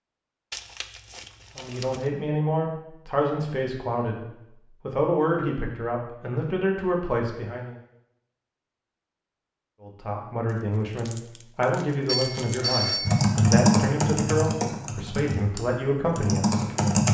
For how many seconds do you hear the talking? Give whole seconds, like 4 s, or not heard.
13 s.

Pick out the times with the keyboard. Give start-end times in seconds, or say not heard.
13.1-17.0.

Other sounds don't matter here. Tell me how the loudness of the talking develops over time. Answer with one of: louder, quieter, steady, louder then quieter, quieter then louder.
steady.